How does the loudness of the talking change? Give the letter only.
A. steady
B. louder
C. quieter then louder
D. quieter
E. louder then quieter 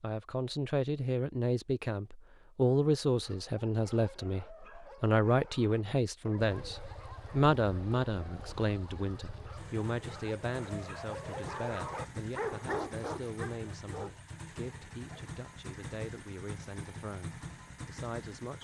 D.